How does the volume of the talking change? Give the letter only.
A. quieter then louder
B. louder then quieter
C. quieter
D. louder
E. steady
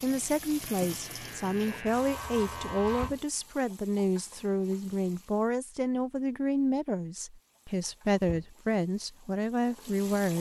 E.